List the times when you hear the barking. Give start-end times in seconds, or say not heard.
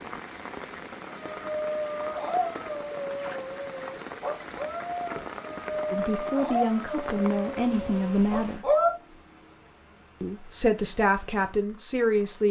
1.3-8.9.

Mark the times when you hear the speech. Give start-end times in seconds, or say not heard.
5.9-8.7, 10.2-12.4.